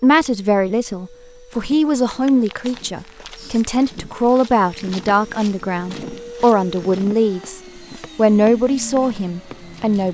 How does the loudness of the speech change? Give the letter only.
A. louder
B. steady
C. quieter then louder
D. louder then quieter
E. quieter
B.